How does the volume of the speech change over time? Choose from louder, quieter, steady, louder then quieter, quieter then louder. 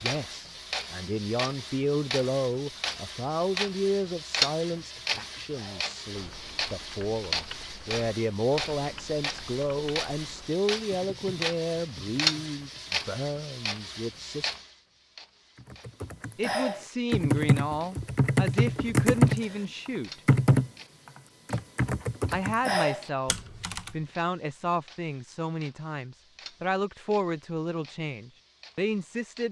steady.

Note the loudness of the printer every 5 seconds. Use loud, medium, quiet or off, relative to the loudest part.
loud, loud, loud, quiet, quiet, quiet.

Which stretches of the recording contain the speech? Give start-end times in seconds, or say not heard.
0.0-14.6, 16.4-20.2, 22.3-29.4.